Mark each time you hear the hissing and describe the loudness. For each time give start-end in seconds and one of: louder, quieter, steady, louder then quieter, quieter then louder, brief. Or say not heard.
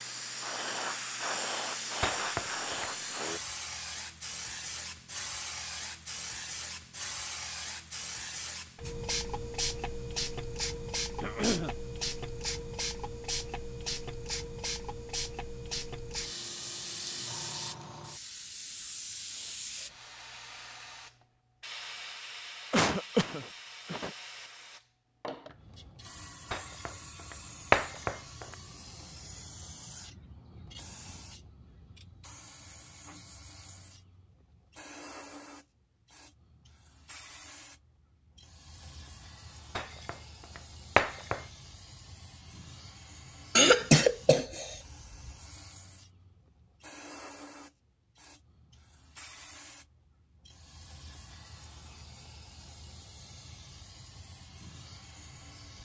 0.0-55.8 quieter.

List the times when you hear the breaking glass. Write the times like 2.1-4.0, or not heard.
2.0-2.9, 26.5-28.6, 39.8-41.5.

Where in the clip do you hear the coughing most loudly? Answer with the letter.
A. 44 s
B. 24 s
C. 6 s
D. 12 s
A.